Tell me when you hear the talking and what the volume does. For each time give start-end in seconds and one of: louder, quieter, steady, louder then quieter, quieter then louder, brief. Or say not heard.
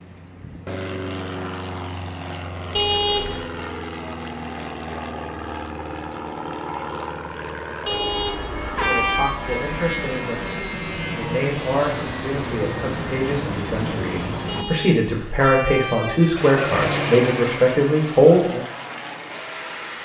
8.8-18.6 louder.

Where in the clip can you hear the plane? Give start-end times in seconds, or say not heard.
0.0-14.7, 16.4-19.9.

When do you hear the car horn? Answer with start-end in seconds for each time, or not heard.
2.8-3.5, 7.8-9.4, 14.4-16.4.